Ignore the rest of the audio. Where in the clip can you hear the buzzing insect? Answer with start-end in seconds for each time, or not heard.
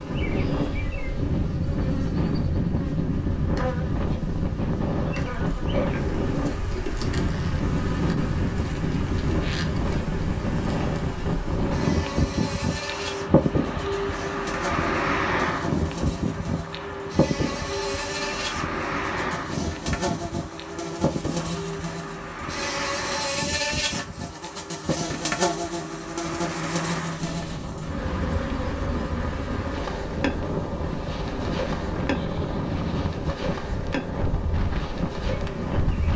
0.0-36.1.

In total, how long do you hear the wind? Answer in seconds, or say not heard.
36 s.